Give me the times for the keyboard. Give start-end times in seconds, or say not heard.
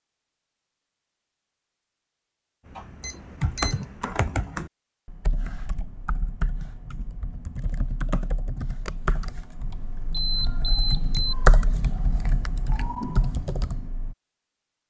2.6-14.2.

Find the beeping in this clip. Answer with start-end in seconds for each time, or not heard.
3.0-3.9, 10.1-11.3.